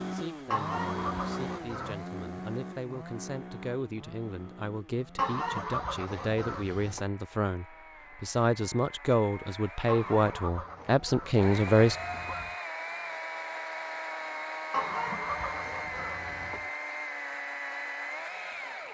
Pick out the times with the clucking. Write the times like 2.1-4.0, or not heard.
0.5-2.0, 5.2-7.0, 9.8-12.6, 14.7-16.7.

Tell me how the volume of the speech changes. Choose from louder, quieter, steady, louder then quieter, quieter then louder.
louder.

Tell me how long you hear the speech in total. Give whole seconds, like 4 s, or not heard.
12 s.